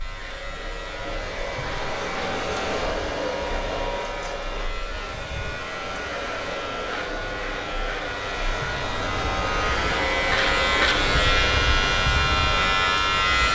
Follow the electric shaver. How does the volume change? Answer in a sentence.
The loudness of the electric shaver goes up.